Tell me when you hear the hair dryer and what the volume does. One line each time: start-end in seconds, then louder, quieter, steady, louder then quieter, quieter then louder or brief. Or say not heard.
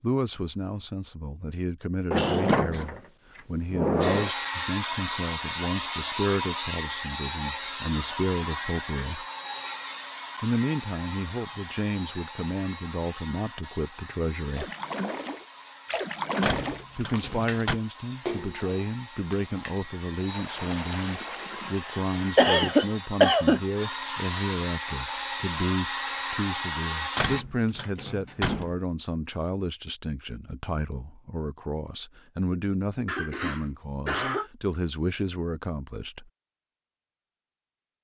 4.0-27.4 quieter then louder.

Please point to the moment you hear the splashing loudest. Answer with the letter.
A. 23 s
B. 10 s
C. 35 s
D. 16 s
D.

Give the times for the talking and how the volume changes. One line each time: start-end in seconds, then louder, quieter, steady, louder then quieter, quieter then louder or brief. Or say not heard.
0.0-9.2 steady
10.4-14.7 steady
16.9-36.3 steady.